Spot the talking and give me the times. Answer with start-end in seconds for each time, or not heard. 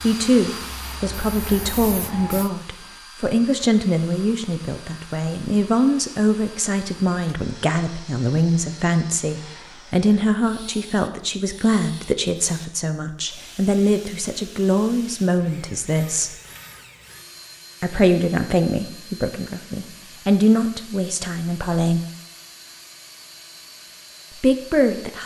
0.0-16.4, 17.8-22.0, 24.4-25.2.